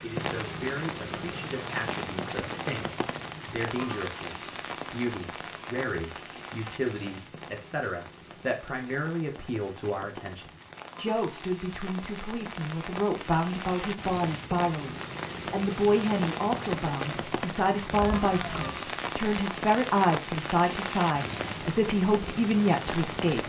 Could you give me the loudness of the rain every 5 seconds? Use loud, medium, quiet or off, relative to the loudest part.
loud, medium, medium, loud, loud.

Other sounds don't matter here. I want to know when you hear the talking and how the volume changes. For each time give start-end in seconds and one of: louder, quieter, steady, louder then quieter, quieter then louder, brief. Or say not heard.
0.0-23.4 louder.